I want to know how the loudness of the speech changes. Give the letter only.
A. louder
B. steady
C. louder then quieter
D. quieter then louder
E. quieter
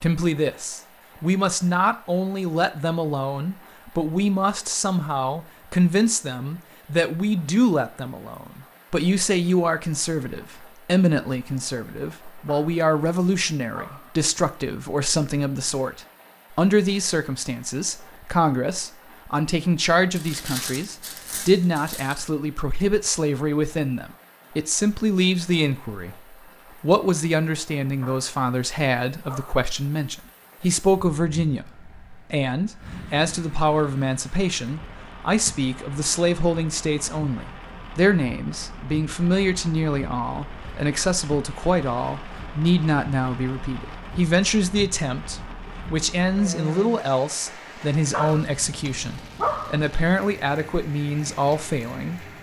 B.